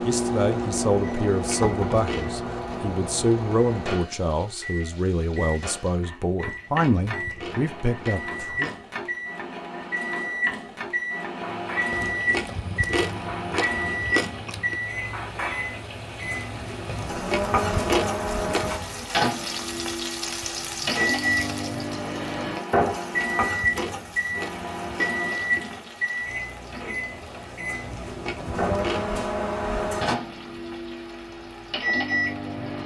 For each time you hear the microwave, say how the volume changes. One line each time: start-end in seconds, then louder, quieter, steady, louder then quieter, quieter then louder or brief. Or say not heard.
0.0-32.8 steady.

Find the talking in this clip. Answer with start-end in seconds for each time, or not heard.
0.0-8.7.